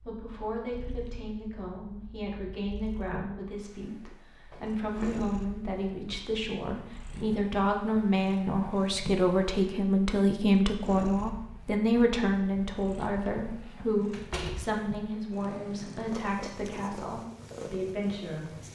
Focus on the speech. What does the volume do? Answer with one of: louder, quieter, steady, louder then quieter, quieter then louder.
louder then quieter.